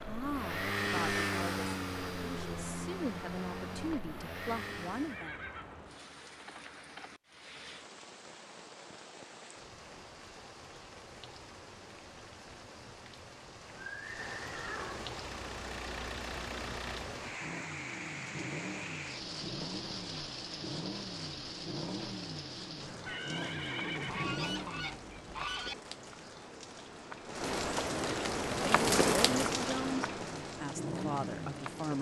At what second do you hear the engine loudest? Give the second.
1 s.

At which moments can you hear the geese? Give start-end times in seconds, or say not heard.
24.1-25.8.